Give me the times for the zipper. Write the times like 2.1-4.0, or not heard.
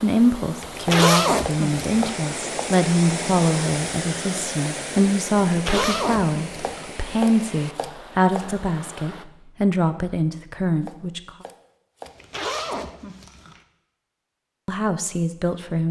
0.6-2.1, 5.5-6.9, 12.1-13.6.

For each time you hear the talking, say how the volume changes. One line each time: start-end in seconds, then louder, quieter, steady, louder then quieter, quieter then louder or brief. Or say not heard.
0.0-11.3 steady
14.7-15.8 brief.